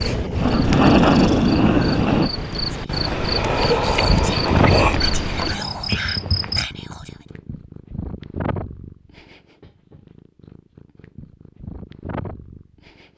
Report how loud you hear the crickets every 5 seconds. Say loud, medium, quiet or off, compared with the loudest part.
loud, medium, off.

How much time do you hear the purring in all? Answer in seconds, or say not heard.
13 s.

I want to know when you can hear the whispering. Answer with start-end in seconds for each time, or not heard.
2.7-7.2.